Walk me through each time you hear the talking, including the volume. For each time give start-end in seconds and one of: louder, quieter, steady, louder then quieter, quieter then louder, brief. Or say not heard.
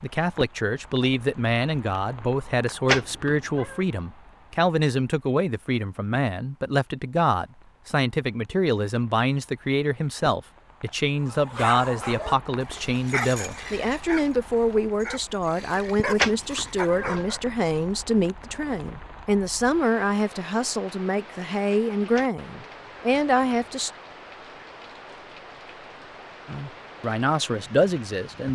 0.0-23.9 steady
26.4-28.4 brief.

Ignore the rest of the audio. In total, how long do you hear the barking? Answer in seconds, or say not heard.
6 s.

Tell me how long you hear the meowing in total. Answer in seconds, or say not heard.
3 s.